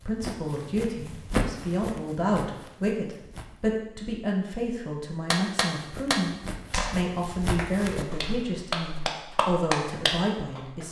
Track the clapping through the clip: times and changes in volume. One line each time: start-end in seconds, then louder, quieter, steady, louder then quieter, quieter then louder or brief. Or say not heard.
5.3-10.6 quieter then louder.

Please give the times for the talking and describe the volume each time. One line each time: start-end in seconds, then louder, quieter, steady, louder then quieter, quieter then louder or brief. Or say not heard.
0.1-10.8 steady.